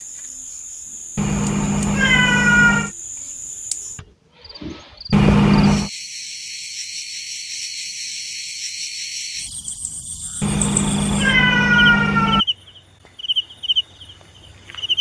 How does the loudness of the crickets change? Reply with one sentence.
The loudness of the crickets goes up.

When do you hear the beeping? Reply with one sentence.
The beeping can't be heard in this clip.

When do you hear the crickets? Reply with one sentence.
You can hear the crickets from 0.0 to 14.9 s.